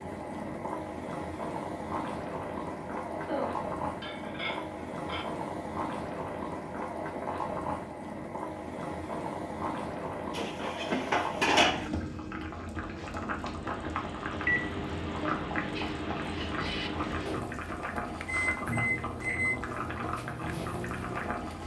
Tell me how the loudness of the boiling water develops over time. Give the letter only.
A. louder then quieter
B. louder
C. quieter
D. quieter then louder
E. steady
E.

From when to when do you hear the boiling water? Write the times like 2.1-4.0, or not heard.
0.0-21.6.